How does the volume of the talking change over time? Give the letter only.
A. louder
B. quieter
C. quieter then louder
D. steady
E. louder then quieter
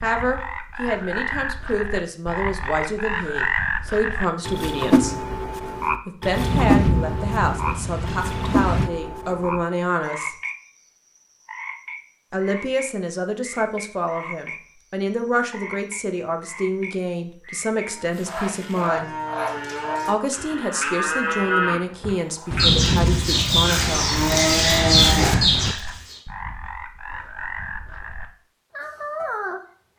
D.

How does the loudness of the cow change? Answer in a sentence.
The loudness of the cow goes up.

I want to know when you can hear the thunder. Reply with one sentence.
The thunder can be heard from 6.3 to 8.9 s and from 22.5 to 25.8 s.